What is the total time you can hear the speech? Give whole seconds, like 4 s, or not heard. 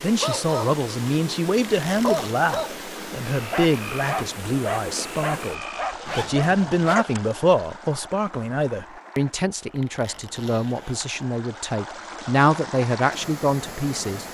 14 s.